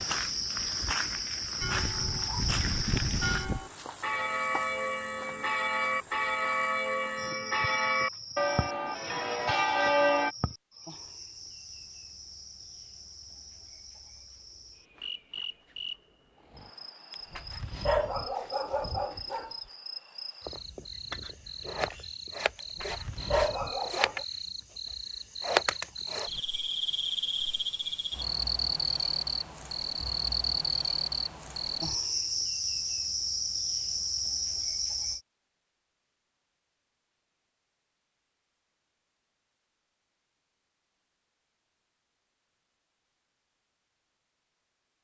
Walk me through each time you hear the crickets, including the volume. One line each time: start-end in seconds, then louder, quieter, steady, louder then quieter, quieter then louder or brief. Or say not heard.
0.0-35.2 quieter then louder.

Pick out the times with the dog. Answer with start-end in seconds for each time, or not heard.
17.1-19.6, 22.6-24.2.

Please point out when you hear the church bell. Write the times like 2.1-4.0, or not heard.
1.6-10.3.